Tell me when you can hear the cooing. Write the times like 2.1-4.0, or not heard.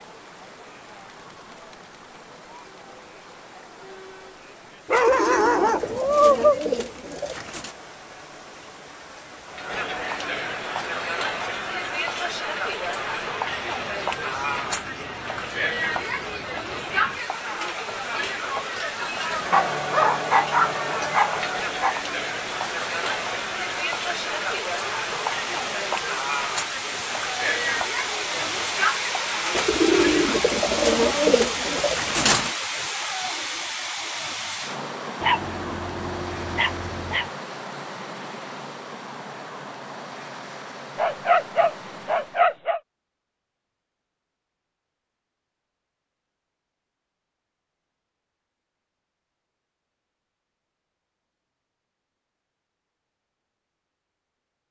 4.9-7.8, 29.5-32.5.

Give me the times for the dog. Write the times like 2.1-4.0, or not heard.
4.8-6.6, 19.5-21.9, 35.2-37.2, 41.0-42.8.